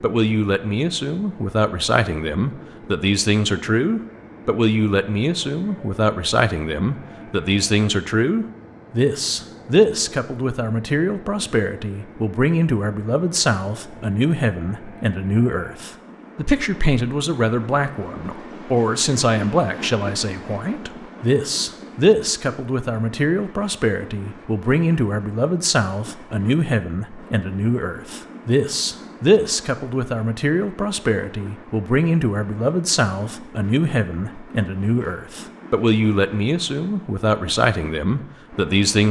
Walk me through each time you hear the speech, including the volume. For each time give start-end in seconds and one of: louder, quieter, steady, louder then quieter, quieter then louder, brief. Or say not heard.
0.0-39.0 steady.